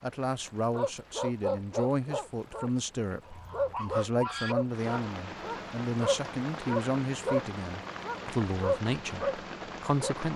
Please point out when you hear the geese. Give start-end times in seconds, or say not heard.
3.2-4.5.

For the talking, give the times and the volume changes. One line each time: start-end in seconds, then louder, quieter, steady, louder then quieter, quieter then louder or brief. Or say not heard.
0.0-10.3 steady.